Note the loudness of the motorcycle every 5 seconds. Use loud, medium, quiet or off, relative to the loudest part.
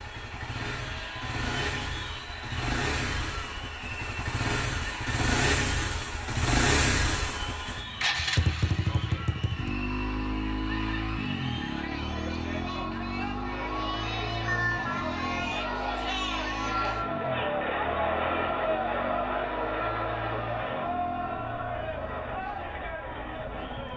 medium, loud, medium, medium, quiet.